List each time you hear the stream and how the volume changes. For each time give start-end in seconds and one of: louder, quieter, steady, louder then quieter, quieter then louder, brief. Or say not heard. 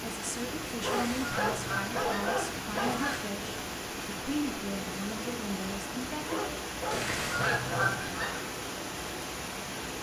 0.0-9.9 steady.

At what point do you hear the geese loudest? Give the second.
8 s.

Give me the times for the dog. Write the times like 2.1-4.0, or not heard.
0.7-3.1, 6.1-8.4.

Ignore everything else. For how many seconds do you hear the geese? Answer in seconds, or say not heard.
4 s.